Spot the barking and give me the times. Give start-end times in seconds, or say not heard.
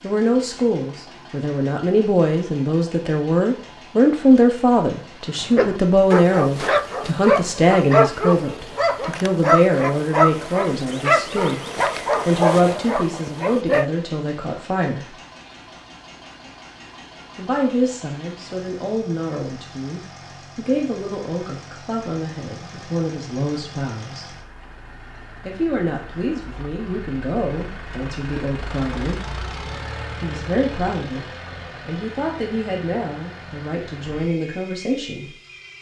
5.4-13.8.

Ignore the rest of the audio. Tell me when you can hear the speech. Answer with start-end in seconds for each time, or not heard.
0.0-11.7, 12.2-15.2, 17.4-24.3, 25.4-29.4, 30.2-35.3.